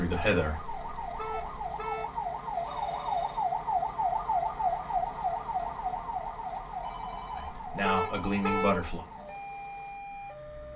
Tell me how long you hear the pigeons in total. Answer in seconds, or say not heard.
not heard.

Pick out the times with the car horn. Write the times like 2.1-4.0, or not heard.
1.1-2.1, 7.8-8.8.